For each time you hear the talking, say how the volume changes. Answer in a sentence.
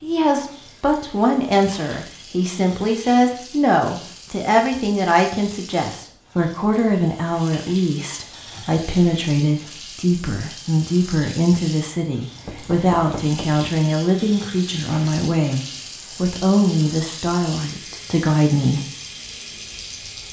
The talking can be heard from 0.0 to 18.8 s, at a steady volume.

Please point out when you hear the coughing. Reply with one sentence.
You can't hear the coughing here.